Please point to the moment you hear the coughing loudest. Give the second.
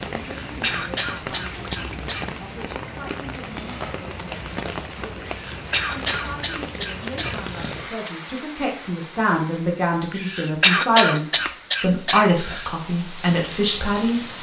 11 s.